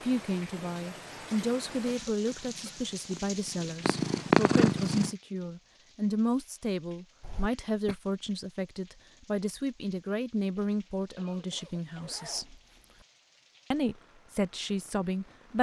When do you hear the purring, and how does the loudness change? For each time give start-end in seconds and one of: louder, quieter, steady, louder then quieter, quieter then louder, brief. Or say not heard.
0.0-5.1 louder.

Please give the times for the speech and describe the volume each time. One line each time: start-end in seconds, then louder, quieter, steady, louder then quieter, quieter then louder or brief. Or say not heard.
0.0-12.6 steady
13.7-15.5 brief.